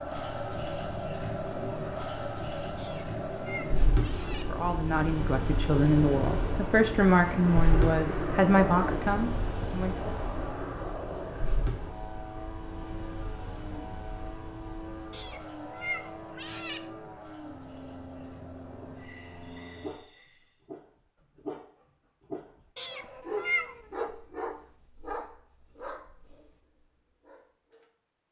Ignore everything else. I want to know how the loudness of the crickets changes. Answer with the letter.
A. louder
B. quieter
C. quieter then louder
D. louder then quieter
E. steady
B.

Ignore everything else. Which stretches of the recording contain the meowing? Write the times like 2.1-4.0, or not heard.
2.8-4.5, 15.1-16.8, 22.8-23.8.